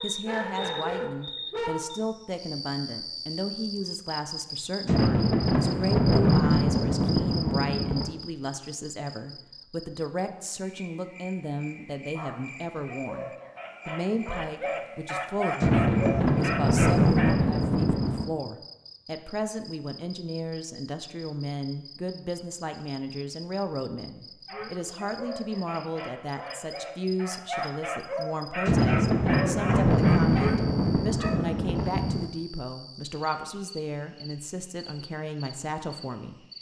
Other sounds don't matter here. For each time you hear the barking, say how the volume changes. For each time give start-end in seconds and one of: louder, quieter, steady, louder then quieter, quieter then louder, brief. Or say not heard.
0.0-1.9 brief
12.1-17.4 louder
24.4-31.4 louder.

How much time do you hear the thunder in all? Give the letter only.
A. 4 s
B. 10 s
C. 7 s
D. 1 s
B.